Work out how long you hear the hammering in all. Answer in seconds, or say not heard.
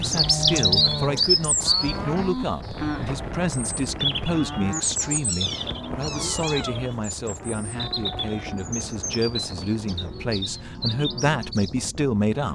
not heard.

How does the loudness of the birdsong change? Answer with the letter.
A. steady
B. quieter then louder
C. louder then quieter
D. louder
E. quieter
E.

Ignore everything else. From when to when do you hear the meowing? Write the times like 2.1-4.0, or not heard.
5.2-7.0.